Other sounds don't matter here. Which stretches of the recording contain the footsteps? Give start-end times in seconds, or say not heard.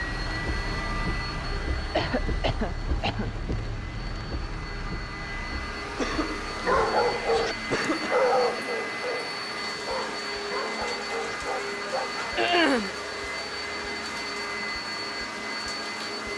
not heard.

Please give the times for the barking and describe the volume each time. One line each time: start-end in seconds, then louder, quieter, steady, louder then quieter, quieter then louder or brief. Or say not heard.
6.5-12.6 quieter.